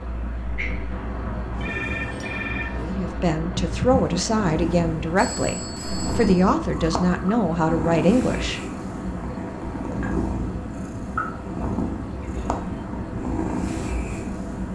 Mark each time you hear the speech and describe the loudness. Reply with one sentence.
The speech can be heard from 2.8 to 8.6 s, at a steady volume.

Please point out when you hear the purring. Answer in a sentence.
The purring can be heard from 0.0 to 14.7 s.